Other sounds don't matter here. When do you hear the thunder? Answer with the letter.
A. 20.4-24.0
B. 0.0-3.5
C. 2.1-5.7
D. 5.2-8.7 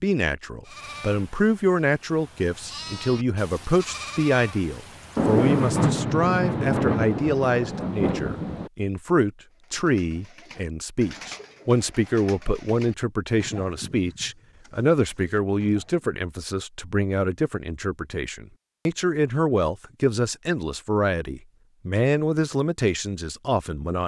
D.